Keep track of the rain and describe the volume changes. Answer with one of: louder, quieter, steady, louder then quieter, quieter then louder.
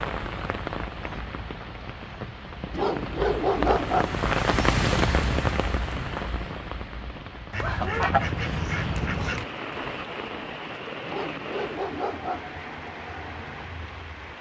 louder then quieter.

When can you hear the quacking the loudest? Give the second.
8 s.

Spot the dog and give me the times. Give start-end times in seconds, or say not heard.
2.7-4.2, 11.1-12.6.